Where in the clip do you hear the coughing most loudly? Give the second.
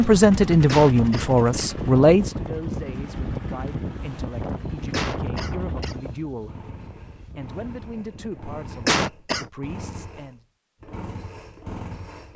9 s.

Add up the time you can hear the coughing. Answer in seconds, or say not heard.
3 s.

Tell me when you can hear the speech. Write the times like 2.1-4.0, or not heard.
0.0-10.4.